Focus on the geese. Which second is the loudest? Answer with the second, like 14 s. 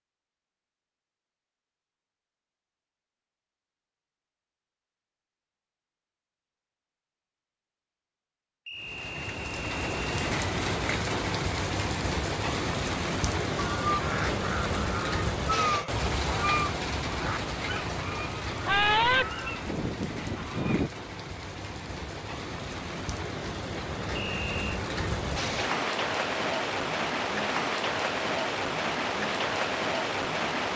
19 s.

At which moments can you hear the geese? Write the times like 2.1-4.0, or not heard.
13.6-20.9.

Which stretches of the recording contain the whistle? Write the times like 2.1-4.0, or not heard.
8.7-10.3, 24.1-24.8.